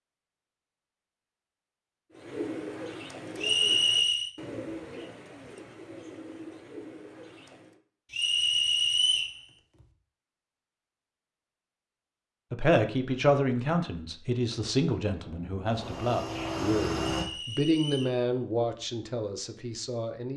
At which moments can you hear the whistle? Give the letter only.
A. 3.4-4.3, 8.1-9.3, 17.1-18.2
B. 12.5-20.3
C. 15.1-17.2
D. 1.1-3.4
A.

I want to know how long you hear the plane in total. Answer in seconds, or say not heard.
2 s.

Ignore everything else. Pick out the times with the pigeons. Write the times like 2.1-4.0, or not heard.
2.1-7.8.